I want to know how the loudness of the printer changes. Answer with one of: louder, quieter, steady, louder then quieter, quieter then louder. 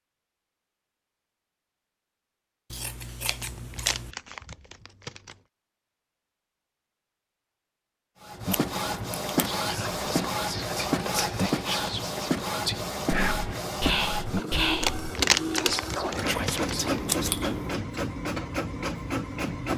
steady.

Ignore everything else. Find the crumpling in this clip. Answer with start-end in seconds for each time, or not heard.
3.4-5.3, 14.8-17.0.